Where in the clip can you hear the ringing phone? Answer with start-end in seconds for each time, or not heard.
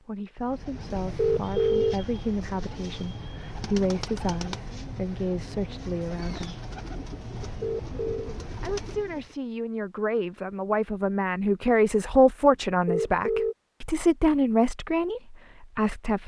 1.1-1.9, 7.6-8.3, 12.8-13.6.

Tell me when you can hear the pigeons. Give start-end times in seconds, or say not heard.
0.4-9.3.